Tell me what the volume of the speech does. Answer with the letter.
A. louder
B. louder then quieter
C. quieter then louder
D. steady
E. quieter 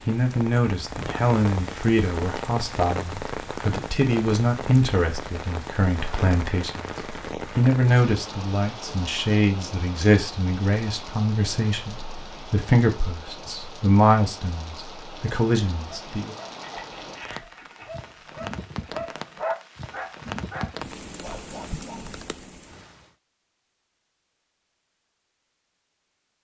D.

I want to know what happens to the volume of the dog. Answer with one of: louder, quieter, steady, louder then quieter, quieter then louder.
louder then quieter.